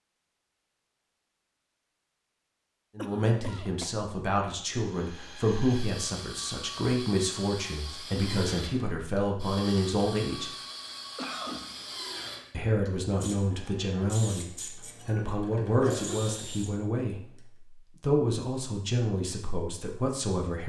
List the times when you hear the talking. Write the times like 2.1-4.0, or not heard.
3.0-10.5, 12.5-20.6.